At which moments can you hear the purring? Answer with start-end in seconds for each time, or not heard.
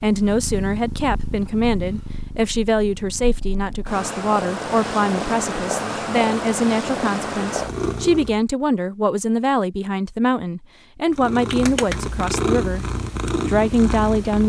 0.0-8.4, 11.1-14.4.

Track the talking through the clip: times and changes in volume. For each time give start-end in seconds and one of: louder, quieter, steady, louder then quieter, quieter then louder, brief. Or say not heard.
0.0-12.8 steady
13.4-14.4 brief.